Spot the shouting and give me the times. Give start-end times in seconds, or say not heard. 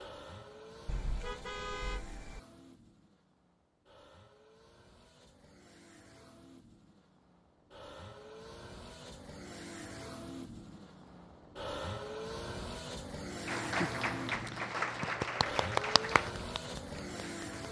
not heard.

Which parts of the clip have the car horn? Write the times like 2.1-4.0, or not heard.
0.8-2.4.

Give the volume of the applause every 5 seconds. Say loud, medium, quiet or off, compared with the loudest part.
off, off, loud, loud.